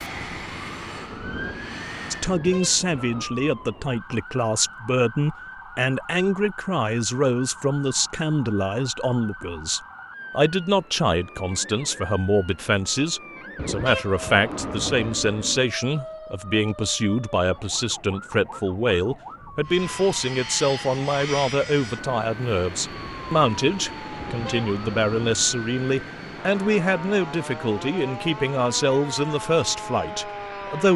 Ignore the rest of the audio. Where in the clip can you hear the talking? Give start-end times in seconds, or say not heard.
2.1-30.9.